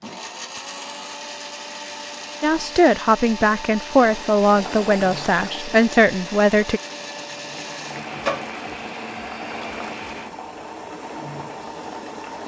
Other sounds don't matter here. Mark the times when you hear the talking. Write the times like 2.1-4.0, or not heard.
2.4-6.8.